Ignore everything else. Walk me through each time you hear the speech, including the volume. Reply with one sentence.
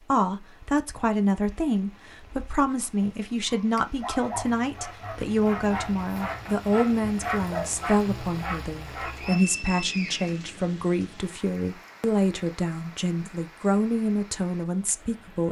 The speech can be heard from 0.1 to 15.4 s, at a steady volume.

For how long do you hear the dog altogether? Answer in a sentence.
You can hear the dog for 6 seconds altogether.